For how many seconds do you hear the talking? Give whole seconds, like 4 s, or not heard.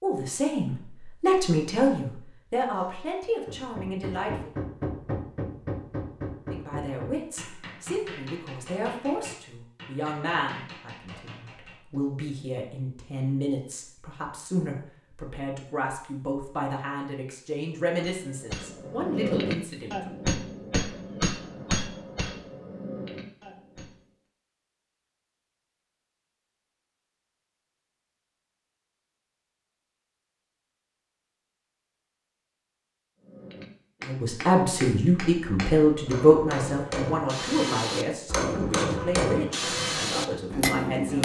25 s.